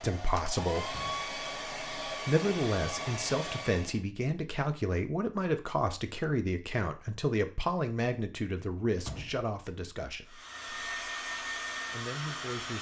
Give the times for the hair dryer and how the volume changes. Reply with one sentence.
The hair dryer can be heard from 0.0 to 4.0 s, at a steady volume; and briefly from 10.2 to 12.7 s.